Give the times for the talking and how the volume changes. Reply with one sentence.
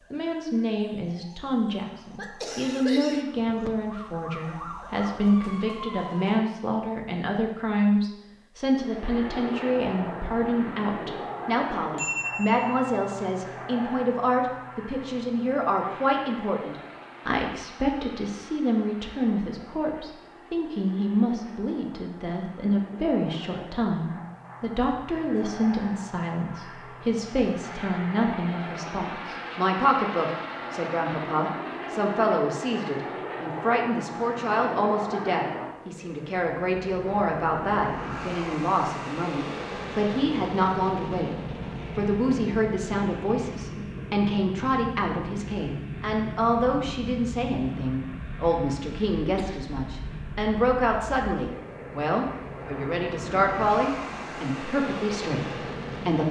You can hear the talking from 0.1 to 56.2 s, at a steady volume.